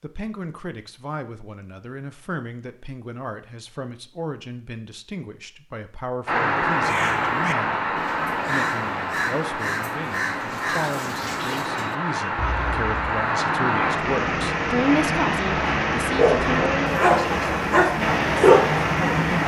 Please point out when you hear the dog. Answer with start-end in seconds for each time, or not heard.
16.1-19.4.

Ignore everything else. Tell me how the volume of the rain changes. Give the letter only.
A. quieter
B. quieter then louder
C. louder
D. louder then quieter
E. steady
B.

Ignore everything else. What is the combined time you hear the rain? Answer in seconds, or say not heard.
13 s.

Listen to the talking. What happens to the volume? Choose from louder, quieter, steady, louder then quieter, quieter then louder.
louder.